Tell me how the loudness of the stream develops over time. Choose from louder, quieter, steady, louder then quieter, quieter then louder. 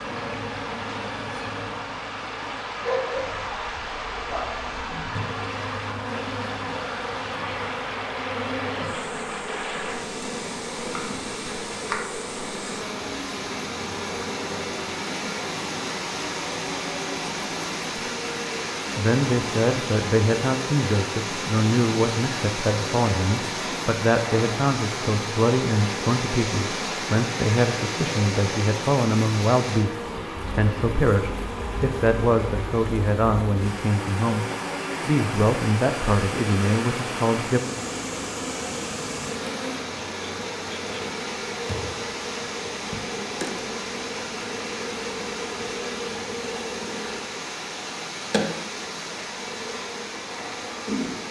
steady.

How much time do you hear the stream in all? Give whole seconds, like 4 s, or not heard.
51 s.